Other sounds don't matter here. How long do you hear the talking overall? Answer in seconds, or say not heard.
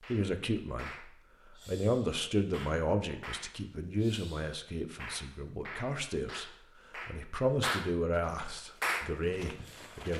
10 s.